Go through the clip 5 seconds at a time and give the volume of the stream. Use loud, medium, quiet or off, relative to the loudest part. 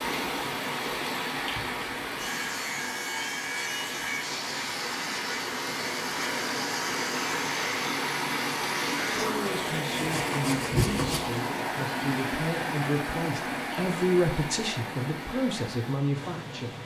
loud, loud, loud, medium.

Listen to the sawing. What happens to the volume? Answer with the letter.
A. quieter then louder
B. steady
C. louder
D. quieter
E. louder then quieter
B.